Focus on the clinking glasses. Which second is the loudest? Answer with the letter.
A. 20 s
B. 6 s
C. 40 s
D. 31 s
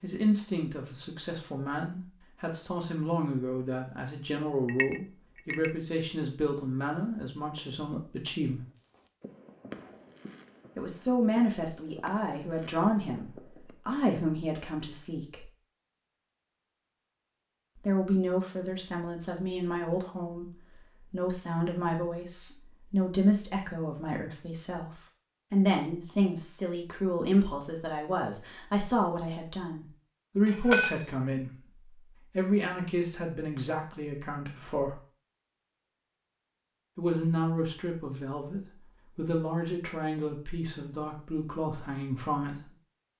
D.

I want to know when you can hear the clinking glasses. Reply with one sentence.
The clinking glasses can be heard from 4.7 to 5.8 s, from 18.6 to 19.2 s and from 30.4 to 31.1 s.